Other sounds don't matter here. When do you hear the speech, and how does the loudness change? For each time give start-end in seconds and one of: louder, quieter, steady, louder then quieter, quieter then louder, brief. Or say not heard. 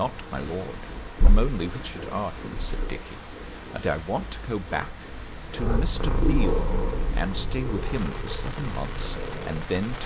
0.0-10.0 steady.